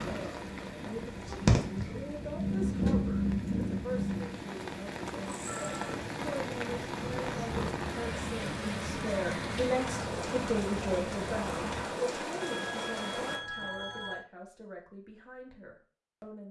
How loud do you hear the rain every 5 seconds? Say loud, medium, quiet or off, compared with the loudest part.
medium, loud, loud, off.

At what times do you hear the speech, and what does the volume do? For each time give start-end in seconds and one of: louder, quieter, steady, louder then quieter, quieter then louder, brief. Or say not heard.
0.0-16.4 louder then quieter.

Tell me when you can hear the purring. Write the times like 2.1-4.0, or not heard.
0.0-12.0.